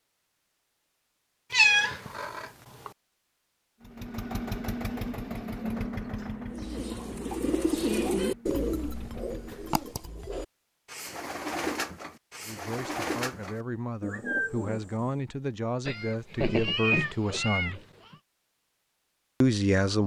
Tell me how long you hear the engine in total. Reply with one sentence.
You can hear the engine for 6 seconds altogether.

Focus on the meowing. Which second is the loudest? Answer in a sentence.
The volume of the meowing peaks at 2 seconds.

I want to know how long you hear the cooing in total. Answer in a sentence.
The cooing can be heard for 9 seconds in total.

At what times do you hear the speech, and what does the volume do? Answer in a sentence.
You can hear the speech from 12.4 to 17.8 s, getting louder; and briefly from 19.4 to 20.0 s.